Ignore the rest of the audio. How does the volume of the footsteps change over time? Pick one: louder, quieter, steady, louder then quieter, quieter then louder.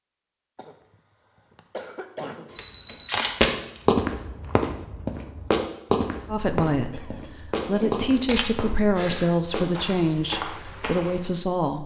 quieter.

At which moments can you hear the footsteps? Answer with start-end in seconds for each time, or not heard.
2.5-11.2.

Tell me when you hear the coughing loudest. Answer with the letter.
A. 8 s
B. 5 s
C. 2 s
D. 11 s
C.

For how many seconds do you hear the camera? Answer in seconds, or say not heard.
3 s.